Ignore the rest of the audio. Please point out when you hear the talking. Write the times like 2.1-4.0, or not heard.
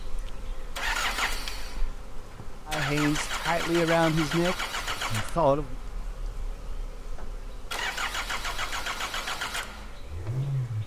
2.6-5.8.